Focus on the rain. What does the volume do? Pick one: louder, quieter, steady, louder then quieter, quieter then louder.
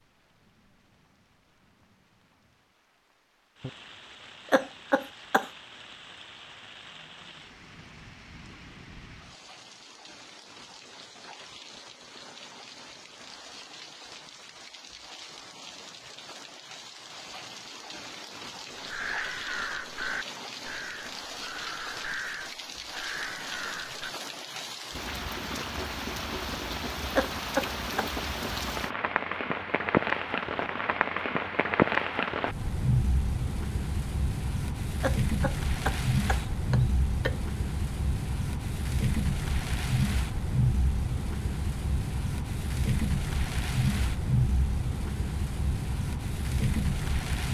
louder.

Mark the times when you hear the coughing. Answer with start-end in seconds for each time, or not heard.
4.5-5.5, 27.1-28.1, 35.0-37.4.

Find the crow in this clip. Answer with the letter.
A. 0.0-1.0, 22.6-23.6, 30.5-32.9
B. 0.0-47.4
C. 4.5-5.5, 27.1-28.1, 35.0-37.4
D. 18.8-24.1
D.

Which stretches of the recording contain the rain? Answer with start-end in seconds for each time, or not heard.
0.0-47.4.